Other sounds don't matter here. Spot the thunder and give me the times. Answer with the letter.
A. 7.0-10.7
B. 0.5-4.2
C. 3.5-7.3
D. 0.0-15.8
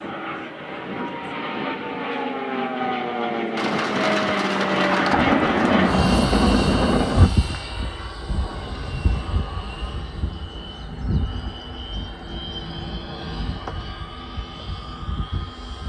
C.